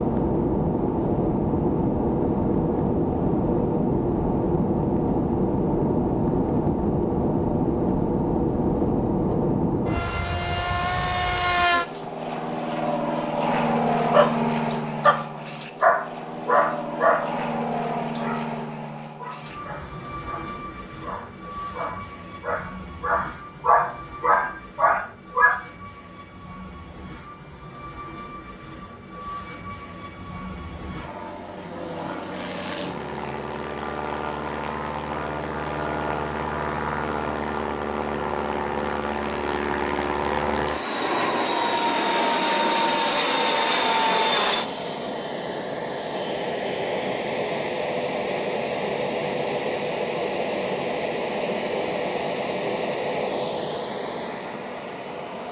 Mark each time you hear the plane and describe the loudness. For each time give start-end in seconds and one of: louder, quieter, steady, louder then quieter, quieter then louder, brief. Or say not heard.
0.0-55.4 quieter then louder.